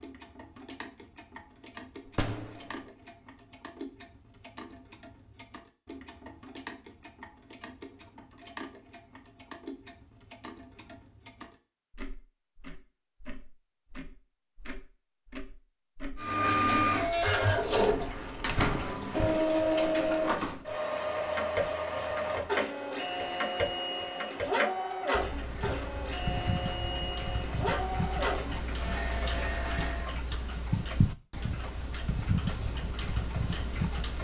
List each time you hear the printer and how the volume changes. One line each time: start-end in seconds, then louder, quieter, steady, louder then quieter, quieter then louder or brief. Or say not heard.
16.1-30.2 quieter.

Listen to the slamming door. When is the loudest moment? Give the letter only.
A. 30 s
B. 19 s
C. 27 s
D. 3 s
B.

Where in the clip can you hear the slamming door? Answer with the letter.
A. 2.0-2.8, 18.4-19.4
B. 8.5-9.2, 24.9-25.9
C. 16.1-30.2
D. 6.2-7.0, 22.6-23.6
A.